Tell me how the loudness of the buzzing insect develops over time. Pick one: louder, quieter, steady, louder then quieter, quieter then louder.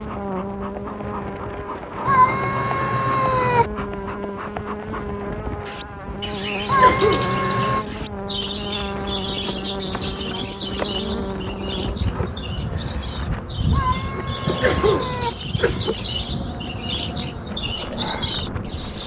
steady.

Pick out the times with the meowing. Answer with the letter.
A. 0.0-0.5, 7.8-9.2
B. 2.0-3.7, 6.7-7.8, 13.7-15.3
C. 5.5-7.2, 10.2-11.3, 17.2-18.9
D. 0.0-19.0
B.